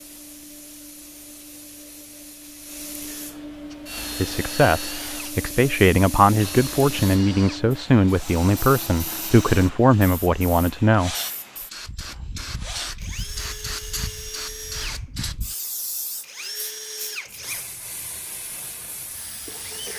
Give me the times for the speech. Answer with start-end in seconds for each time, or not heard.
4.2-11.2.